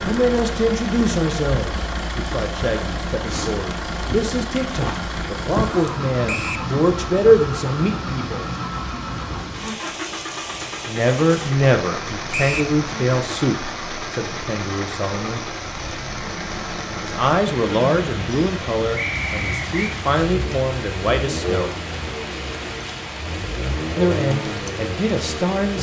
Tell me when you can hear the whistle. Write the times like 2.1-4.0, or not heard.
6.2-6.7, 12.3-12.8, 18.9-19.9.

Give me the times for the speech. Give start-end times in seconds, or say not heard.
0.0-8.4, 10.8-15.4, 17.0-21.8, 23.9-25.7.